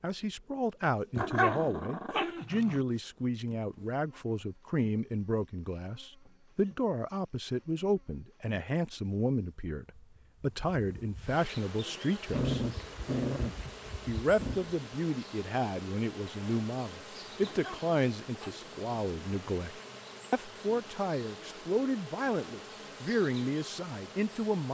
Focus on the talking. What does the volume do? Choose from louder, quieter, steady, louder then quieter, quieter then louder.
steady.